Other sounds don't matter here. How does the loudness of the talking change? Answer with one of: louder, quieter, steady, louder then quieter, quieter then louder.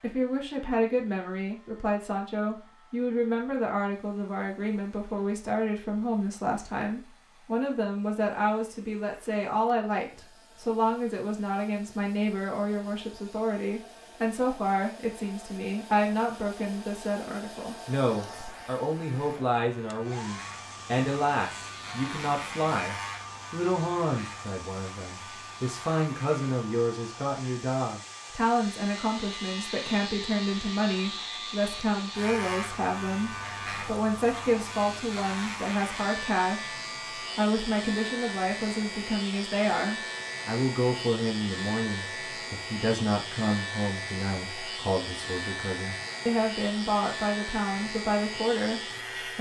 steady.